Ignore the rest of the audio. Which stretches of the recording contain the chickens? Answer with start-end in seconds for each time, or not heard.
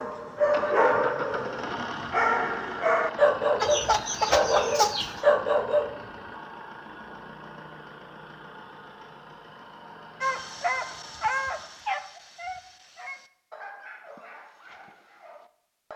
3.6-5.3.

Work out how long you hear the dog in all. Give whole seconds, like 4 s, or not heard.
12 s.